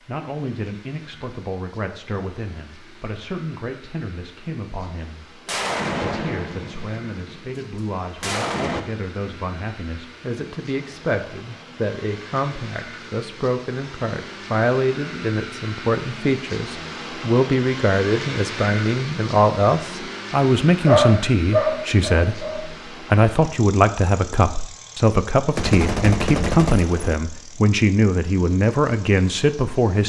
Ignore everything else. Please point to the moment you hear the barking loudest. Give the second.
21 s.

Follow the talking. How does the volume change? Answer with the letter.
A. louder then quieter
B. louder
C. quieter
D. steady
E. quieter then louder
B.